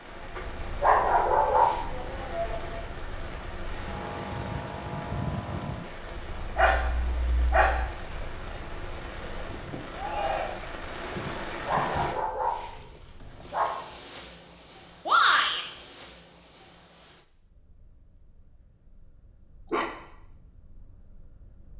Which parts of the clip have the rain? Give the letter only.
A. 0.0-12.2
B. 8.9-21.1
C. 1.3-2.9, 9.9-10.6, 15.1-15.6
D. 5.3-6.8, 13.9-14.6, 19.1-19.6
A.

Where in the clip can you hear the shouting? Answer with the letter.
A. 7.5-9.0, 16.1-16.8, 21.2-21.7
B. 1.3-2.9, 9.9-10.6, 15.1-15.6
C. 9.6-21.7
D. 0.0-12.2
B.